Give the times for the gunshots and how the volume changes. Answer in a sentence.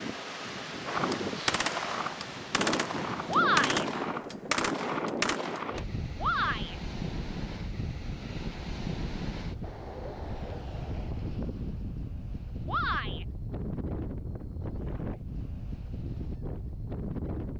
The gunshots can be heard from 0.8 to 5.8 s, at a steady volume.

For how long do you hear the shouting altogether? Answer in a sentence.
You can hear the shouting for 2 seconds altogether.